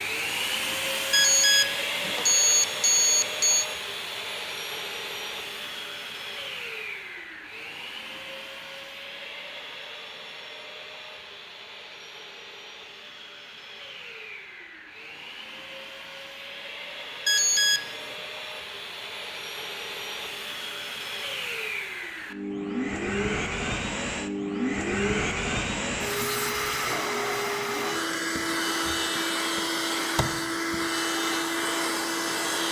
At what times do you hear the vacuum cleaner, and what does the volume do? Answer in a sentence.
The vacuum cleaner can be heard from 0.0 to 32.6 s, getting quieter then louder.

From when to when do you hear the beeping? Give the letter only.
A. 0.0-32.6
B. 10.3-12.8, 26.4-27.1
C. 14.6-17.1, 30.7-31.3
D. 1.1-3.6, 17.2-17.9
D.